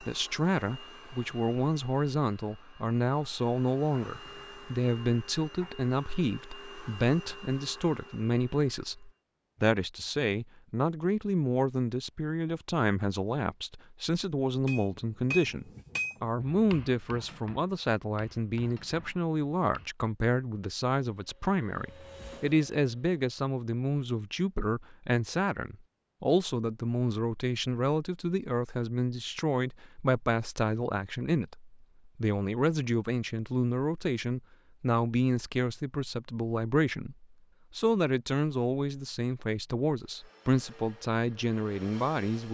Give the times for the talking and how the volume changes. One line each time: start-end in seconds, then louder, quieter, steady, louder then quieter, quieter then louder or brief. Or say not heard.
0.0-42.4 steady.